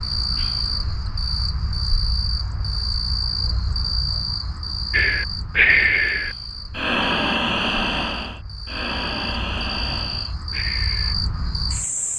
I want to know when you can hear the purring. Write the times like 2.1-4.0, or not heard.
not heard.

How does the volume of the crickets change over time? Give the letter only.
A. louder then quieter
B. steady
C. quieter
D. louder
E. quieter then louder
E.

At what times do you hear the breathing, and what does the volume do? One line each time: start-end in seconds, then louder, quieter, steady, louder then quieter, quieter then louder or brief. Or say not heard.
4.9-11.2 quieter.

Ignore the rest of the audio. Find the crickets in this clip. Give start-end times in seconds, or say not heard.
0.0-12.1.